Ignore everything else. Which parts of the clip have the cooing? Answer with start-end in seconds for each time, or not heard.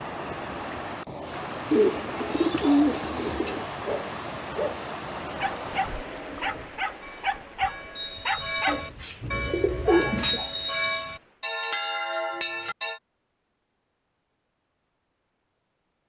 1.7-3.6, 8.7-10.4.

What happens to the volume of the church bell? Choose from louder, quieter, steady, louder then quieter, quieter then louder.
louder.